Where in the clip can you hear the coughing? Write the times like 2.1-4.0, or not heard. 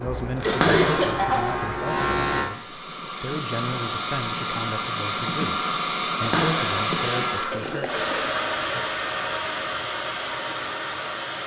0.4-1.4, 7.5-8.4.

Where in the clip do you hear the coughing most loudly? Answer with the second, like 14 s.
1 s.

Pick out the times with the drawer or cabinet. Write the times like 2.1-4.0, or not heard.
0.5-1.8, 6.2-7.3.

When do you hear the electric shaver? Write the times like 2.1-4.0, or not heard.
0.0-2.5.